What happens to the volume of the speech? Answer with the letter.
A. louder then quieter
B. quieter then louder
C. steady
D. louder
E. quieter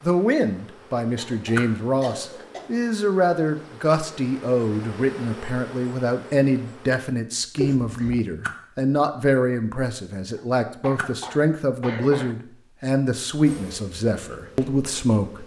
C.